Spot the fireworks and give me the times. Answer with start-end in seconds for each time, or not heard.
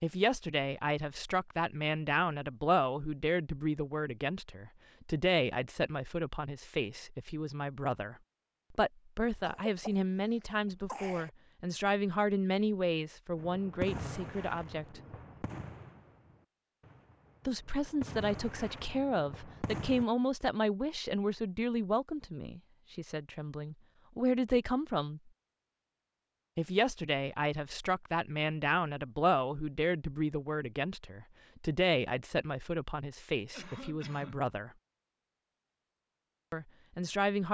13.3-20.1.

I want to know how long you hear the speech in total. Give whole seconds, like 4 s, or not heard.
32 s.